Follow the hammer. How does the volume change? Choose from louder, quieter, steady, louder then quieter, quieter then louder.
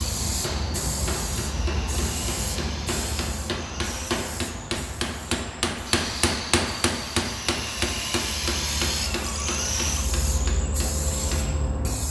louder then quieter.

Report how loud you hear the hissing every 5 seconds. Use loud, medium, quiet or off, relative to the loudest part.
loud, medium, loud.